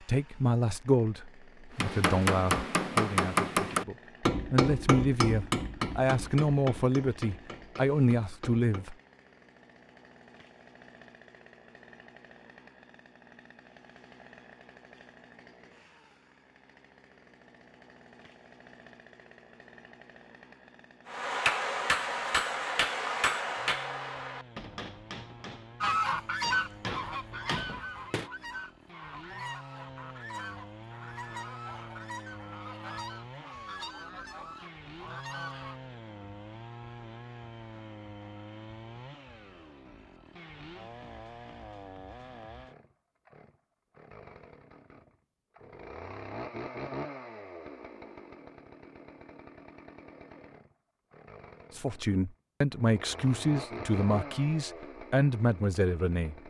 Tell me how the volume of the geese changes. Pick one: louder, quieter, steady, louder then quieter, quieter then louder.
quieter.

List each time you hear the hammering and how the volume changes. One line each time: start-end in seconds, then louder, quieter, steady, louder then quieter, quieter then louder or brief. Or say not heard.
1.8-8.9 quieter
21.1-28.3 quieter then louder.